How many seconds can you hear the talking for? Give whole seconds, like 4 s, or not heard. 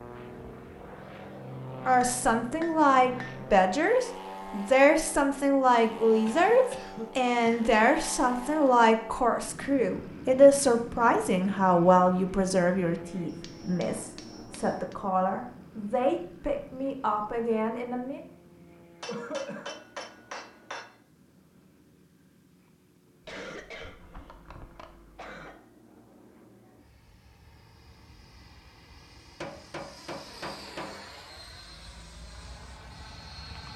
16 s.